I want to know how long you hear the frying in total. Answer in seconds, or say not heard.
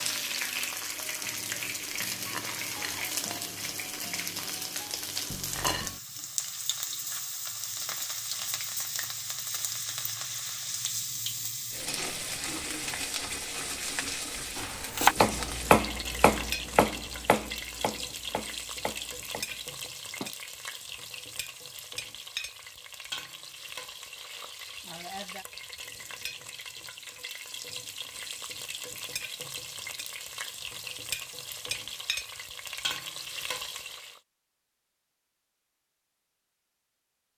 34 s.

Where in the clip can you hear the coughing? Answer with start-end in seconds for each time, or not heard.
not heard.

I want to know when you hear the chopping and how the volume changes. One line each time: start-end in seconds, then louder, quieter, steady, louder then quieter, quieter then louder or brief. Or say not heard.
14.6-20.4 quieter.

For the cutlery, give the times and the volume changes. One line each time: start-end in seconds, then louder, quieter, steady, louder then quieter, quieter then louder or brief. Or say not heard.
not heard.